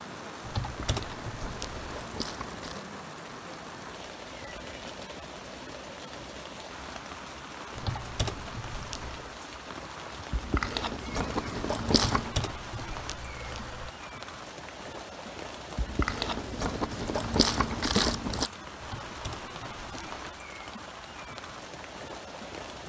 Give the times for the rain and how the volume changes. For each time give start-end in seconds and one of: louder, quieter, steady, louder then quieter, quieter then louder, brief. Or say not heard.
0.0-22.8 steady.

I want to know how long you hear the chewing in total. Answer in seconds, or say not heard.
7 s.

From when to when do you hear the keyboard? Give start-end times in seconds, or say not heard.
0.5-2.0, 7.8-9.3, 12.1-13.9, 18.8-20.1.